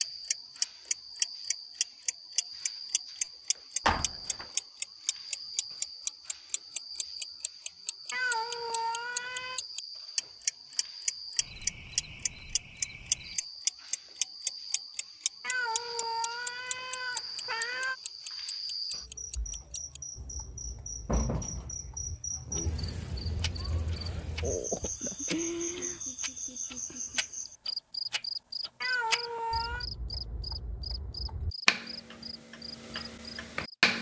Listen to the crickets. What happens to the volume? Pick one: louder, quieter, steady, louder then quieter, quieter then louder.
louder.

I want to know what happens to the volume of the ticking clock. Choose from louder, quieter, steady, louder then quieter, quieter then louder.
quieter then louder.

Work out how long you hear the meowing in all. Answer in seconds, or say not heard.
5 s.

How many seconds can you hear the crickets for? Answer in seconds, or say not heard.
34 s.